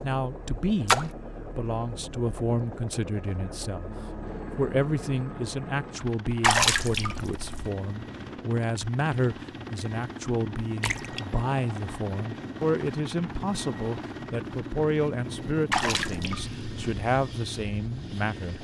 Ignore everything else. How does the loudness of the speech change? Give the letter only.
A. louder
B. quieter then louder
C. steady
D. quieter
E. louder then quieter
C.